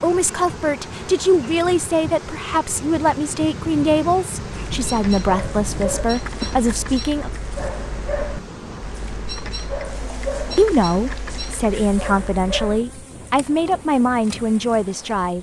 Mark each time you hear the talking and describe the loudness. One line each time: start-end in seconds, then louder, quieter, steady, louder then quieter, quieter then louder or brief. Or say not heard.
0.0-7.3 steady
10.6-15.3 steady.